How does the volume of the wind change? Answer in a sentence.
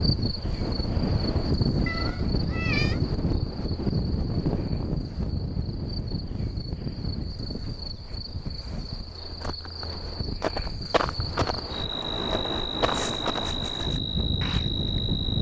The loudness of the wind goes down, then up.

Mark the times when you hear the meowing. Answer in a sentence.
You can hear the meowing from 1.9 to 3.0 s.